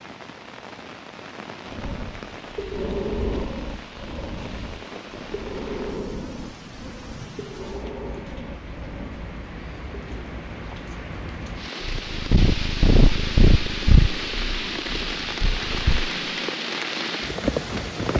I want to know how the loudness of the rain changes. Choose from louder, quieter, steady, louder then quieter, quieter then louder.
louder.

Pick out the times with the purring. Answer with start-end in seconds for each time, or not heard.
11.8-16.1.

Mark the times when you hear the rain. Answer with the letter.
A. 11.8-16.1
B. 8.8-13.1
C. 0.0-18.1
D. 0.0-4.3
C.